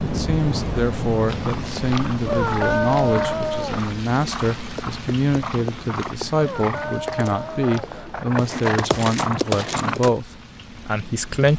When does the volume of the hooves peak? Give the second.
9 s.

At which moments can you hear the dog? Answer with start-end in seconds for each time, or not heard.
2.2-3.9, 6.3-8.0.